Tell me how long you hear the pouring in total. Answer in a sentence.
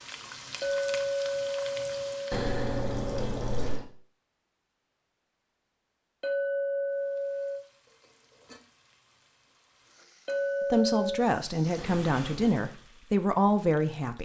The pouring can be heard for 2 seconds in total.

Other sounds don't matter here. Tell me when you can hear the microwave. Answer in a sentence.
The microwave can't be heard in this clip.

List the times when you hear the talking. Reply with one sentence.
You can hear the talking from 10.7 to 14.2 s.